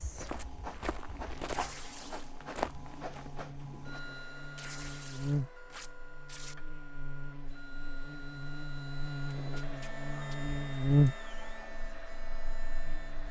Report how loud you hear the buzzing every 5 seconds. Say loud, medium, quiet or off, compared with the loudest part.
quiet, medium, loud.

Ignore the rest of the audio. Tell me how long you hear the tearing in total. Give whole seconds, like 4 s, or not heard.
4 s.